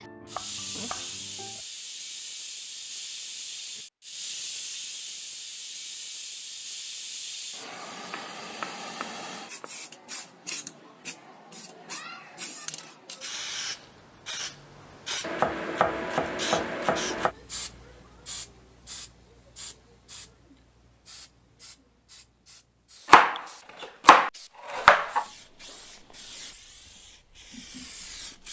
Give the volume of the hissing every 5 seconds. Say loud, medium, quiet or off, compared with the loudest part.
loud, loud, loud, loud, quiet, medium.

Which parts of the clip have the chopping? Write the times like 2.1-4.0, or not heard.
0.0-1.6, 8.1-9.7, 15.2-17.4, 23.1-25.2.